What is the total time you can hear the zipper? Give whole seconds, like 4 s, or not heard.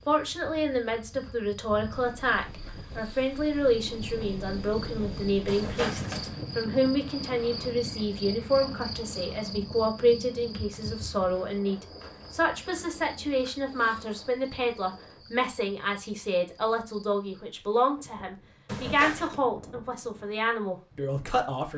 2 s.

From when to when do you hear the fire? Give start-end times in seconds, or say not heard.
not heard.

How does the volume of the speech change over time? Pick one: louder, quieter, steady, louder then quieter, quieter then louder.
steady.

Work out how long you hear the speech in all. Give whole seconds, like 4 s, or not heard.
22 s.